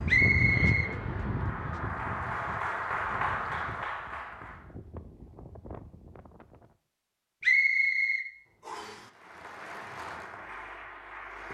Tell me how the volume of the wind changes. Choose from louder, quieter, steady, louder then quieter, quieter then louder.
quieter.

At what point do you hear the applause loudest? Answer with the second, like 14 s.
3 s.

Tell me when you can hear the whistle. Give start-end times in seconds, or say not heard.
0.1-0.9, 7.4-9.0.